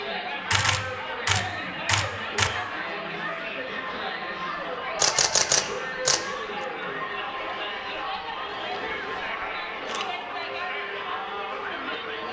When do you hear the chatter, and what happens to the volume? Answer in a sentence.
You can hear the chatter from 0.0 to 12.2 s, at a steady volume.